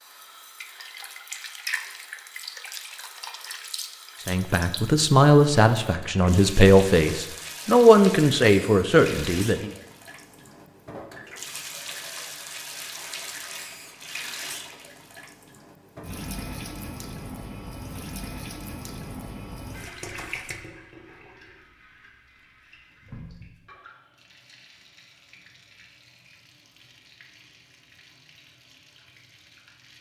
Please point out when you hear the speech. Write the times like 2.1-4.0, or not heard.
4.2-9.7.